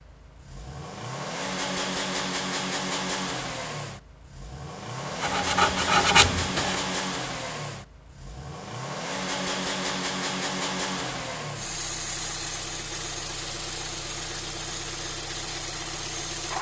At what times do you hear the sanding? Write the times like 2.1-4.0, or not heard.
5.2-7.0.